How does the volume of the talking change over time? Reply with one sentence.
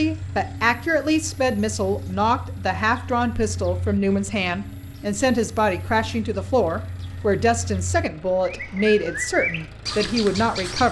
The loudness of the talking stays about the same.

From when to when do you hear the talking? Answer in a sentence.
You can hear the talking from 0.0 to 10.8 s.